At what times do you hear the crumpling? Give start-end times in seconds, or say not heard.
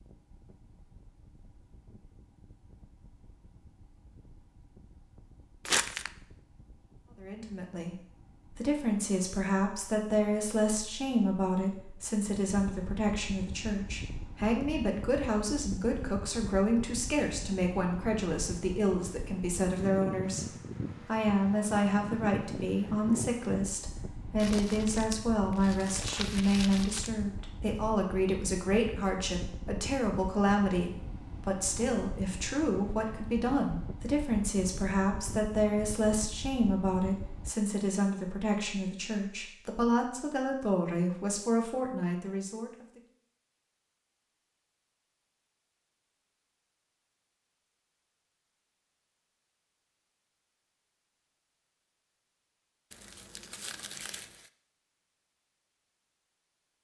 5.7-6.1, 24.4-27.1, 52.9-54.5.